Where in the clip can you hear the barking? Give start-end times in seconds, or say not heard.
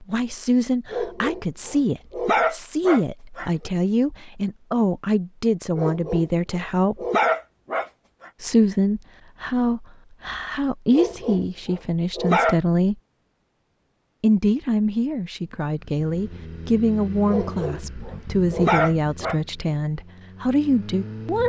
0.9-3.5, 5.8-8.3, 10.9-12.6, 17.2-19.4.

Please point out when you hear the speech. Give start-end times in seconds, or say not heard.
0.0-7.0, 8.4-12.9, 14.2-21.4.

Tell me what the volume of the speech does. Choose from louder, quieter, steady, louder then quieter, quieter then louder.
steady.